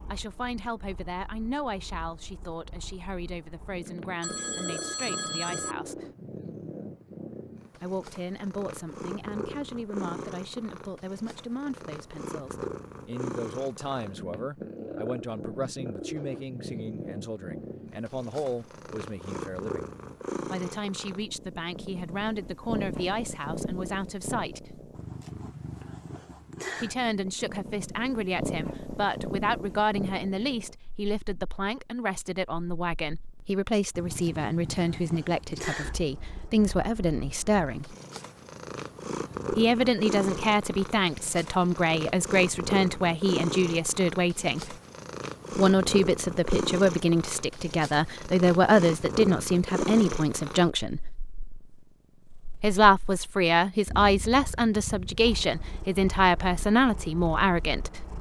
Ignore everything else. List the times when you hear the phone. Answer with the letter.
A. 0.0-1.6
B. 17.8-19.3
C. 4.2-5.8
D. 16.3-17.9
C.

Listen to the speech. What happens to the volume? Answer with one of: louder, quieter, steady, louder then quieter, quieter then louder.
louder.